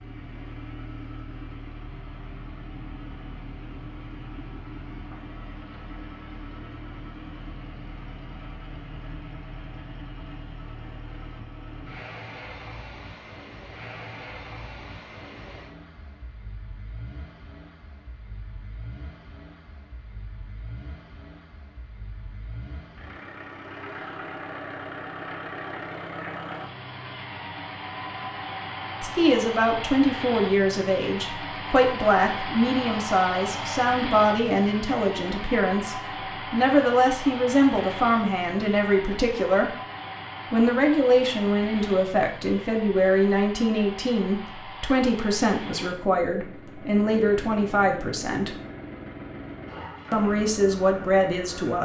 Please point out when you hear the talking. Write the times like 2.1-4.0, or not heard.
29.0-39.8, 40.5-48.5, 50.1-51.8.